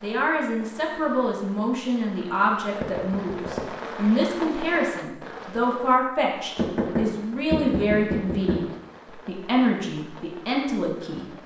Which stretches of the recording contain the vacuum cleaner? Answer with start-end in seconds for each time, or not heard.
not heard.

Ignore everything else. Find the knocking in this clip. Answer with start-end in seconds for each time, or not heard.
2.8-3.6, 6.5-8.7.